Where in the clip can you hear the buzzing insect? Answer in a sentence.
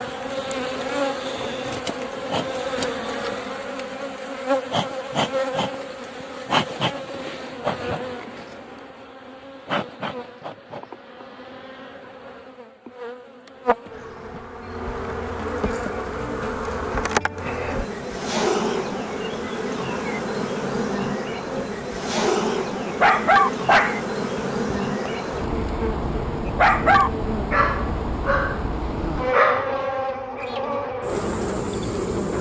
You can hear the buzzing insect from 0.0 to 32.3 s.